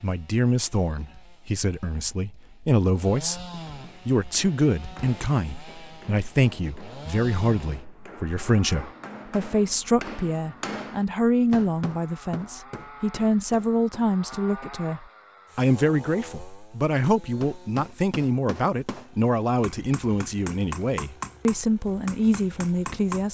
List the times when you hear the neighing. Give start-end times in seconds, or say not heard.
not heard.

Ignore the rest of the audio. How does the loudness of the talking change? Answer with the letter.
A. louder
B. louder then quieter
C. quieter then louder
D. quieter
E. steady
E.